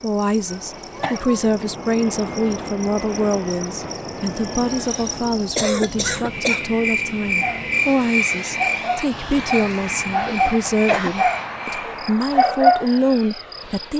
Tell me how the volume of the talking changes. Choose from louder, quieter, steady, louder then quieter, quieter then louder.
steady.